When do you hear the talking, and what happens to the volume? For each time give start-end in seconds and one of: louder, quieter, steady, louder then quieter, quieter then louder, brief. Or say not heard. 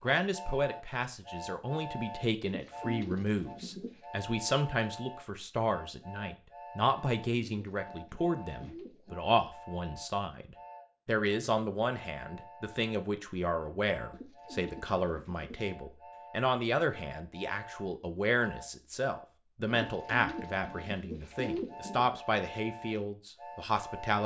0.0-24.2 steady.